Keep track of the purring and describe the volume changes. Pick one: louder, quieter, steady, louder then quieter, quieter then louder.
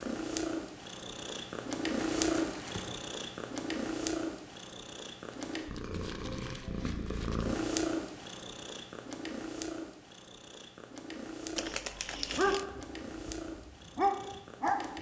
quieter.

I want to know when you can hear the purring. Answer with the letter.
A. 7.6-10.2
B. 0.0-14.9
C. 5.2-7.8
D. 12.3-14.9
B.